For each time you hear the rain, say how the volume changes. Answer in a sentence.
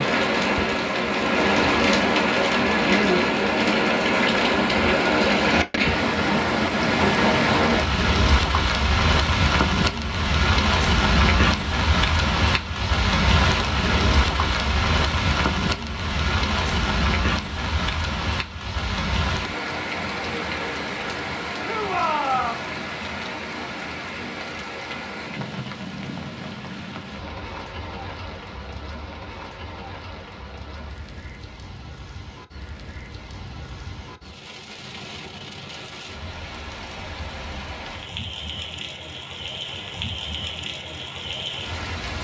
The rain can be heard from 0.0 to 42.2 s, getting quieter.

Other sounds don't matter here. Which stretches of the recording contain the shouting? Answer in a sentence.
The shouting can be heard from 21.6 to 22.6 s.